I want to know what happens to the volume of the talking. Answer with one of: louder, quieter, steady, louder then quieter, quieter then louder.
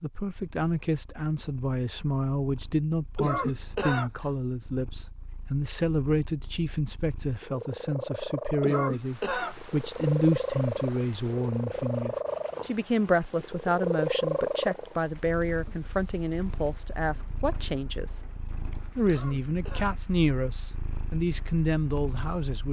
steady.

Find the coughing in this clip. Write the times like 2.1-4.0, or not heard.
3.1-4.1, 8.6-9.6, 19.1-20.0.